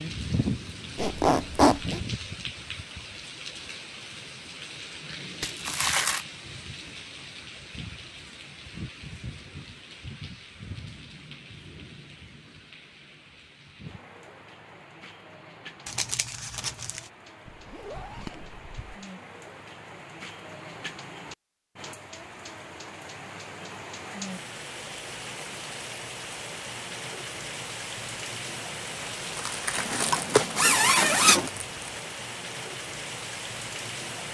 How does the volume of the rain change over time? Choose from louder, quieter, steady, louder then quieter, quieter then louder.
quieter then louder.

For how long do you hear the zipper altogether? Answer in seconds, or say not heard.
4 s.